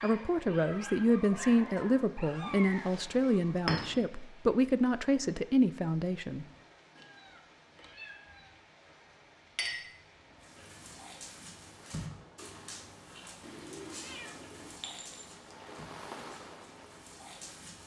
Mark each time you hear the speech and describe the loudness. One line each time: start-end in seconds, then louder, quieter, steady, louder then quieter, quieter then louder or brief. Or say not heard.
0.0-6.5 steady.